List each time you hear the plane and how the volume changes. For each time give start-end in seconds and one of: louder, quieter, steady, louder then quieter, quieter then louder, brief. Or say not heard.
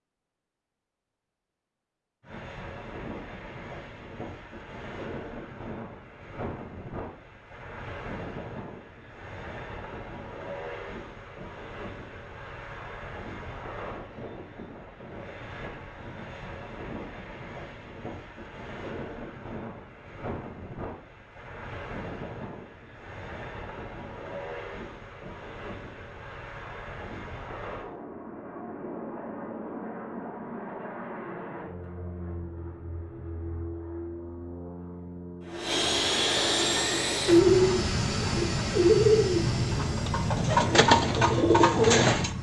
2.2-42.3 louder.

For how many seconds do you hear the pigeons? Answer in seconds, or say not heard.
6 s.